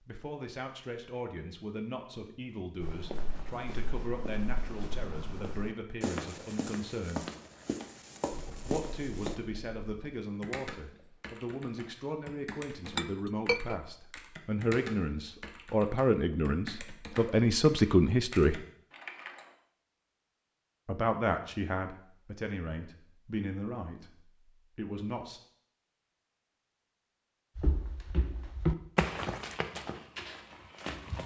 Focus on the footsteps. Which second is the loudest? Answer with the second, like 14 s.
29 s.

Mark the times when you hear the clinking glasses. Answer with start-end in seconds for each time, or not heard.
12.9-13.8.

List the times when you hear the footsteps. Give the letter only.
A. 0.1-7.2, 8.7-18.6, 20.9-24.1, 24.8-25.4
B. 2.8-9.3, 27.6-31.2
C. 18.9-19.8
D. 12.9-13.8
B.